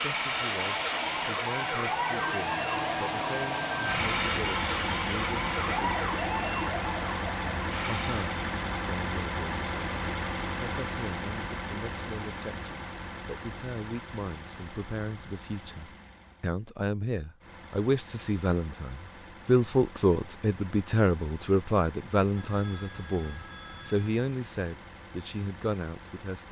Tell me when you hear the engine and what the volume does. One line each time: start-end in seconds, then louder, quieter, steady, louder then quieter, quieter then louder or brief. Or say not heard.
0.0-26.4 quieter.